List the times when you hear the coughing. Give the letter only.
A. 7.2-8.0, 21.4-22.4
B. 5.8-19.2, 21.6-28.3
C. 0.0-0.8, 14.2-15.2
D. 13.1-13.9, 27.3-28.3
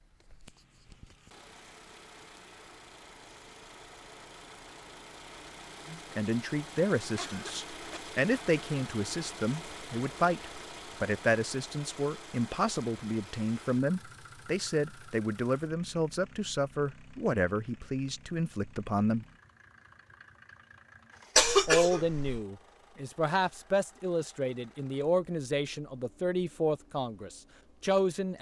A.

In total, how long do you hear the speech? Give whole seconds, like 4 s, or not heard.
20 s.